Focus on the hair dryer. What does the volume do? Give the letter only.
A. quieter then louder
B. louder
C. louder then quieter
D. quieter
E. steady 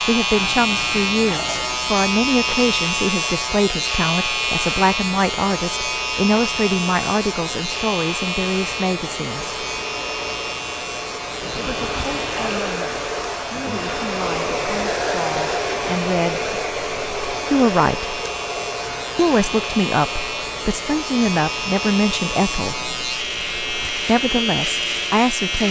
C.